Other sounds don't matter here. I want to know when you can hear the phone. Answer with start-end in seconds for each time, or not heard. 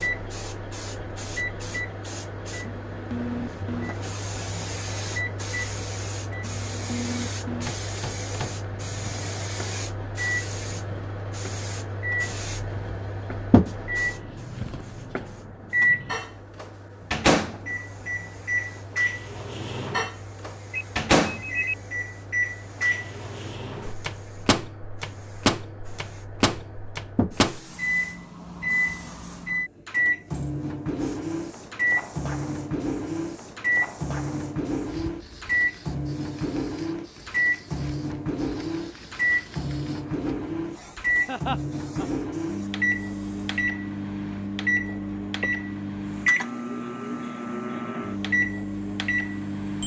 20.7-21.8.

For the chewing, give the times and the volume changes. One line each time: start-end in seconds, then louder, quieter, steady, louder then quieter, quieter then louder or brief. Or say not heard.
not heard.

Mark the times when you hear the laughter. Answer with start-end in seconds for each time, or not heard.
41.2-42.1.